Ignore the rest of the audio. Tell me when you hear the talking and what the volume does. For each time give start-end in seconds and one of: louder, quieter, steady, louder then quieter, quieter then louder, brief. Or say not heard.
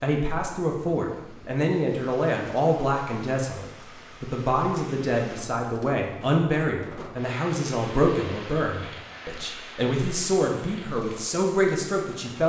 0.0-12.4 steady.